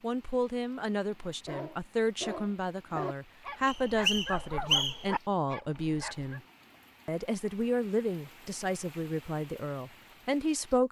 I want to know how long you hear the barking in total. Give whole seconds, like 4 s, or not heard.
5 s.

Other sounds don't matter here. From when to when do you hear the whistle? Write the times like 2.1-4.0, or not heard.
3.6-5.1.